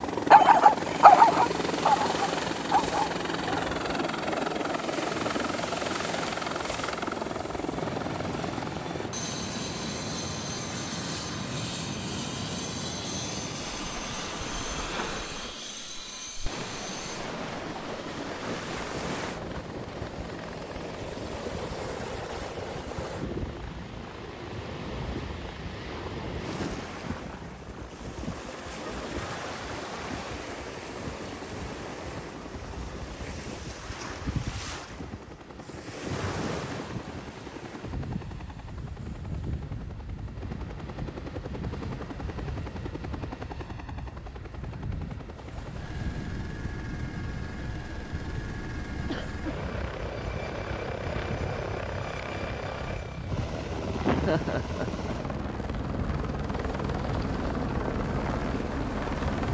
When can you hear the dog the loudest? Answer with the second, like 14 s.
1 s.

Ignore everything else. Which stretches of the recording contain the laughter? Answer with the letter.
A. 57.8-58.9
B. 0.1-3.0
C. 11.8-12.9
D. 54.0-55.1
D.